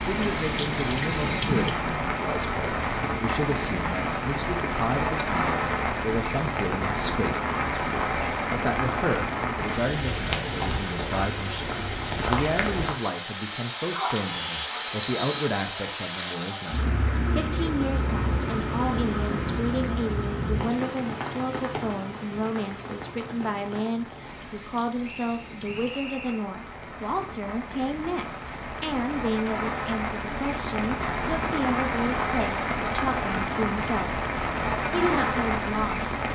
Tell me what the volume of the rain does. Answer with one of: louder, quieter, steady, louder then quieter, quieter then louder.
quieter then louder.